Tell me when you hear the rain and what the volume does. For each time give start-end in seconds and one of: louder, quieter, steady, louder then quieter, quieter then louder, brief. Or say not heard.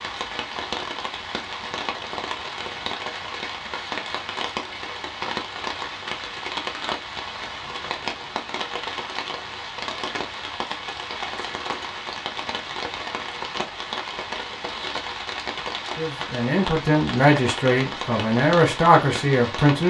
0.0-19.8 steady.